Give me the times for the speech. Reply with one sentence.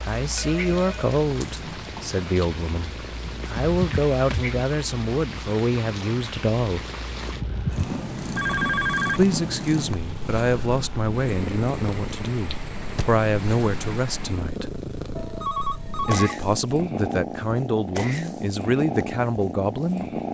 The speech can be heard from 0.1 to 6.8 s, from 9.1 to 14.7 s and from 16.1 to 20.1 s.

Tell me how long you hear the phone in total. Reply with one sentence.
The phone can be heard for 3 seconds in total.